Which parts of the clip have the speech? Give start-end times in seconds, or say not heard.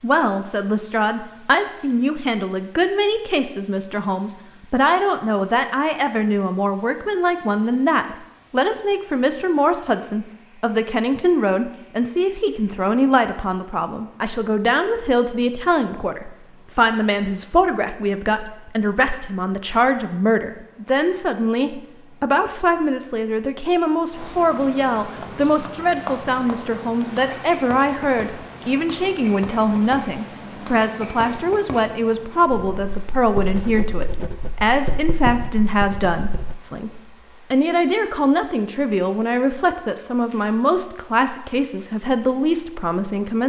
0.0-43.4.